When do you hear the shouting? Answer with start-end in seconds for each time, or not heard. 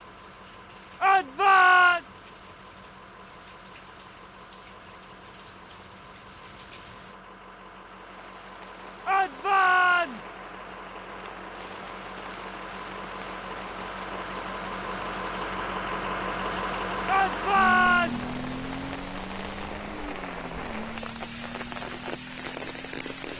1.0-2.0, 9.1-10.4, 17.1-18.4.